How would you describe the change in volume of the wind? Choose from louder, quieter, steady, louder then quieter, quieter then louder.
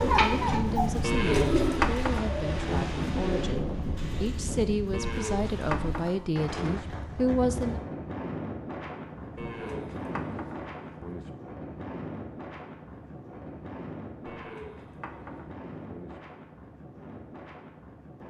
quieter.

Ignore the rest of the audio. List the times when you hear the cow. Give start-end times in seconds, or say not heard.
1.0-2.9, 4.9-6.9, 9.3-11.3, 14.2-16.2.